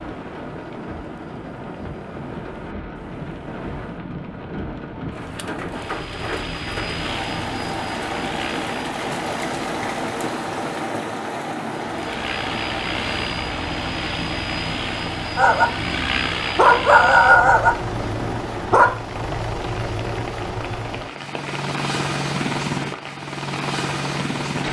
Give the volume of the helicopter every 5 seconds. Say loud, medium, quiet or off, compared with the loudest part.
quiet, medium, loud, loud, loud.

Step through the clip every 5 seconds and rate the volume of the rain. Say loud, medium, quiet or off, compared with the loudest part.
medium, loud, loud, medium, medium.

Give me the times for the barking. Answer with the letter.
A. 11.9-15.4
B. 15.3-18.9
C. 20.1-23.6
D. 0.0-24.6
B.